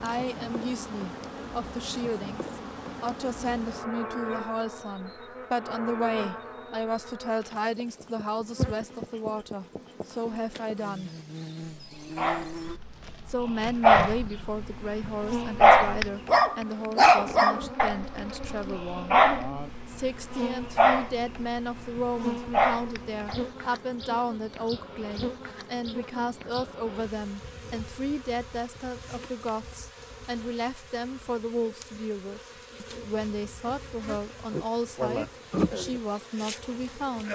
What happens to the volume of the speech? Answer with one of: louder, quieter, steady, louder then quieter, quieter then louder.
steady.